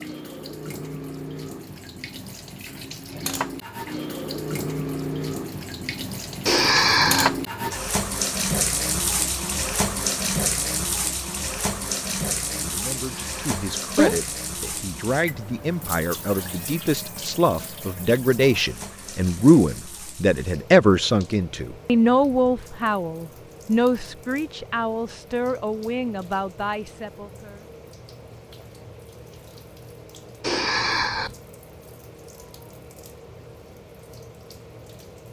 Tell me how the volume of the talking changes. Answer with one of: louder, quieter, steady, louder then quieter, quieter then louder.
louder then quieter.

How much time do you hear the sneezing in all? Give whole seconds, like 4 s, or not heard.
3 s.